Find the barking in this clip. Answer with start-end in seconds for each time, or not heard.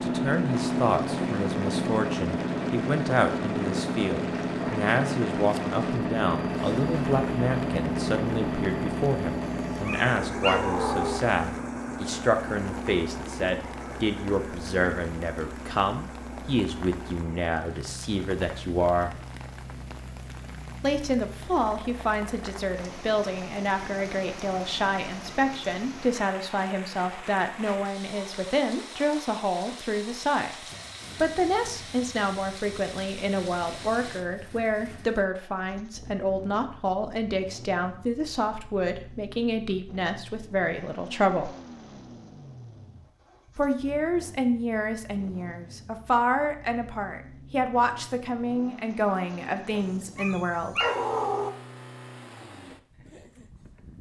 9.4-11.2, 49.8-51.5.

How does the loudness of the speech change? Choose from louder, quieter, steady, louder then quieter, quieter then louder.
steady.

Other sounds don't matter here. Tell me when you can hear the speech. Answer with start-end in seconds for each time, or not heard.
0.0-19.1, 20.8-41.5, 43.5-50.8.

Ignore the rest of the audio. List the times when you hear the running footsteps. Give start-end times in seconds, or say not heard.
not heard.